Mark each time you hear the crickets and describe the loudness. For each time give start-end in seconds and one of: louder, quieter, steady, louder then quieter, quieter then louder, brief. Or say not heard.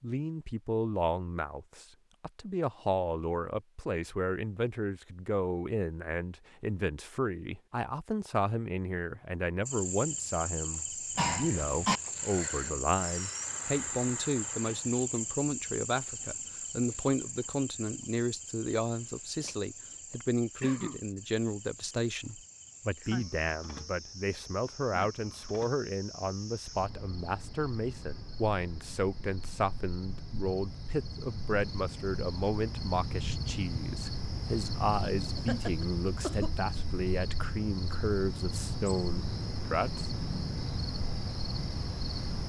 9.7-42.4 quieter then louder.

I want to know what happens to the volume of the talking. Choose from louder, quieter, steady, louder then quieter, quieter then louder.
steady.